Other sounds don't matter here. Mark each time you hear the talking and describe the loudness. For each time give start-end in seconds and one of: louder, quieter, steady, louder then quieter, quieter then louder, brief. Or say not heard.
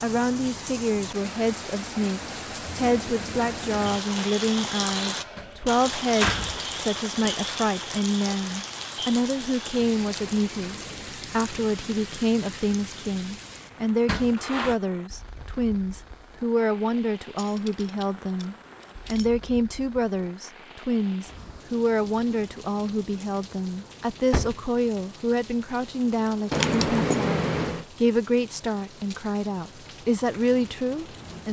0.0-31.4 steady.